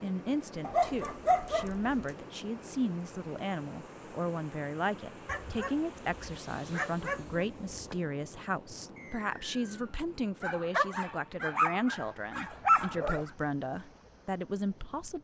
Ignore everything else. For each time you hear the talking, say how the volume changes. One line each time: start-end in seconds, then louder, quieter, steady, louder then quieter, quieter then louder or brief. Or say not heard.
0.0-15.1 steady.